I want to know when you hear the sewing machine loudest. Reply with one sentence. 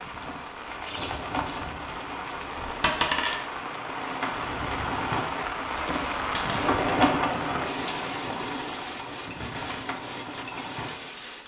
The loudest moment of the sewing machine is at 7 seconds.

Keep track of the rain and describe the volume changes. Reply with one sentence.
The volume of the rain goes up, then down.